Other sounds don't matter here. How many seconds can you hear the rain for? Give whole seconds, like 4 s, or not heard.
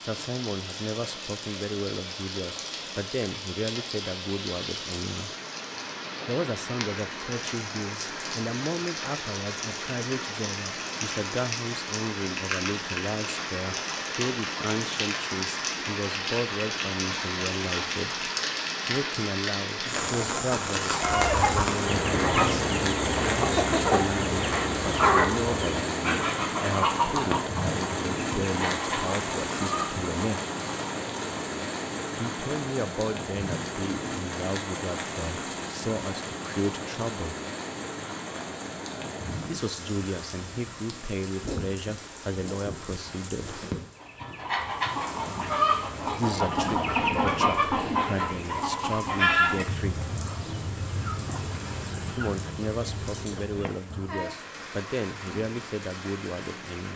57 s.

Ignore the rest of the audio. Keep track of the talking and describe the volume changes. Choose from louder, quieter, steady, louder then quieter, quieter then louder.
steady.